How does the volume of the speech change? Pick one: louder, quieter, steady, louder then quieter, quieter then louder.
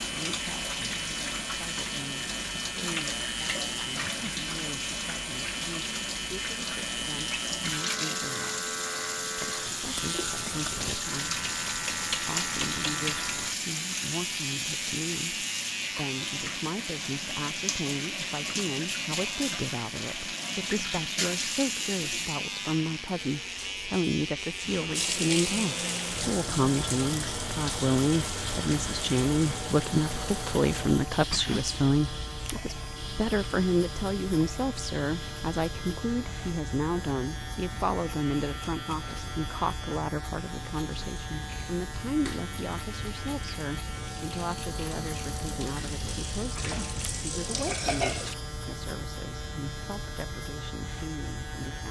louder then quieter.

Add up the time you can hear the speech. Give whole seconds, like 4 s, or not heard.
51 s.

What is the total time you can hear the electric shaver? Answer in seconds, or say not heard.
52 s.